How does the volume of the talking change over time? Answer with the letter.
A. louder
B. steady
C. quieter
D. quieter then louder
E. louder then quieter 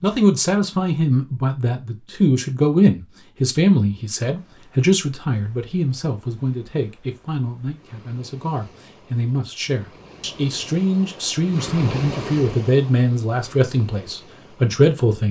D.